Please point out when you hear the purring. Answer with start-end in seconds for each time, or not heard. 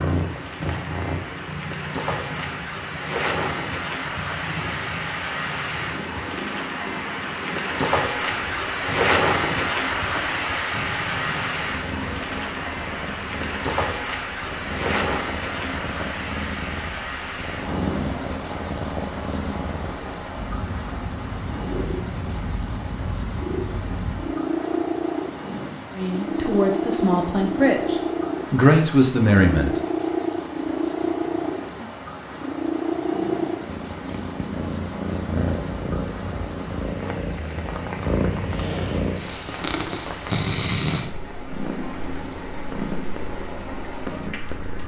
0.0-44.8.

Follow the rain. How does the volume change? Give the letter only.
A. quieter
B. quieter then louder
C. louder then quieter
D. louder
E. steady
A.